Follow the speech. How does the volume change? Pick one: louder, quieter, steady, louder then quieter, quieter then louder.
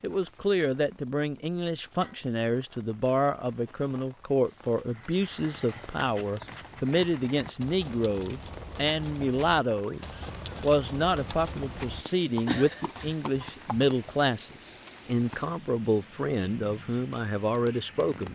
steady.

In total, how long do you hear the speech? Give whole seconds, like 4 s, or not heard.
18 s.